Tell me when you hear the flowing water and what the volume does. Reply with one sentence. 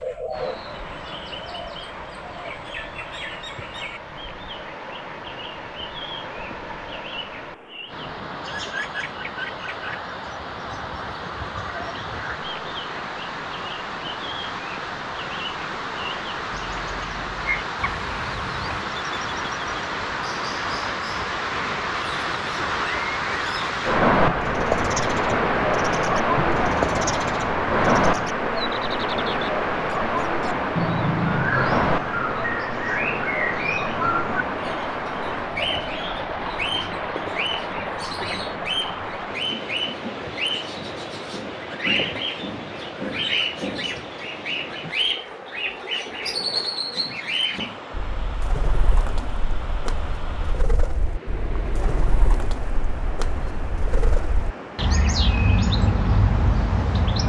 You can hear the flowing water from 0.0 to 57.0 s, getting louder then quieter.